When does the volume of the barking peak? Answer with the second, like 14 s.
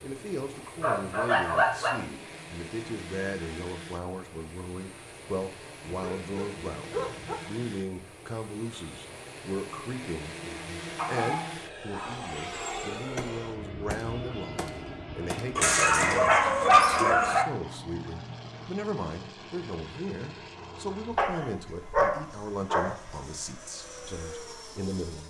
17 s.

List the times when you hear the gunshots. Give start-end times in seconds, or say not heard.
13.2-16.2.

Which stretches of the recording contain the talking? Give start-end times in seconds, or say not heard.
0.0-25.2.